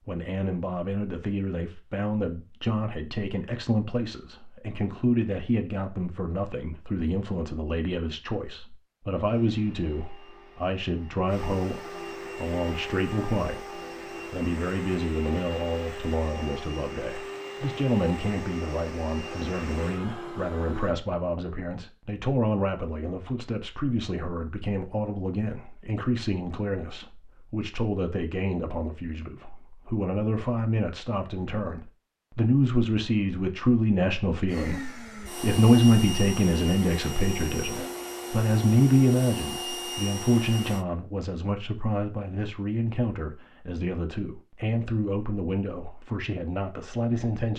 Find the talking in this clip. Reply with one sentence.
You can hear the talking from 0.1 to 47.5 s.